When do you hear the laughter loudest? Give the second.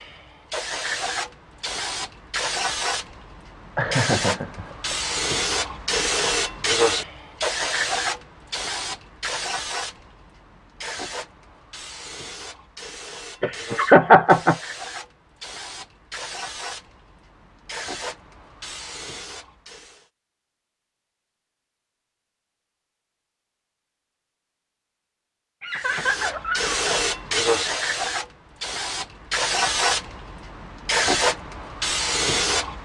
14 s.